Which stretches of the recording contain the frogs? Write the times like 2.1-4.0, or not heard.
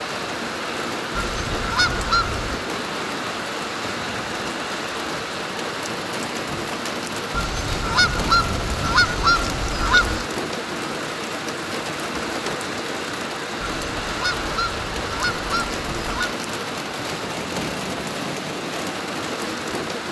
not heard.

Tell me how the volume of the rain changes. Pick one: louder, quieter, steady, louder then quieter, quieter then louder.
steady.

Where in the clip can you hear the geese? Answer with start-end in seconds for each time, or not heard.
1.1-2.7, 7.3-10.2, 13.6-16.3.